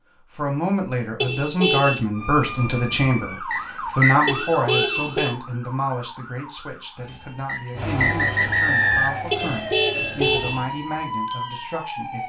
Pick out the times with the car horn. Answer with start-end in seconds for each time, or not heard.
1.2-2.0, 4.2-5.3, 9.3-10.6.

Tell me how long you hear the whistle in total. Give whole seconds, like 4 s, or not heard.
3 s.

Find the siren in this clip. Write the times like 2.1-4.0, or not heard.
2.1-12.2.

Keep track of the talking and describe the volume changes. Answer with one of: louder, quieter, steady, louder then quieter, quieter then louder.
quieter.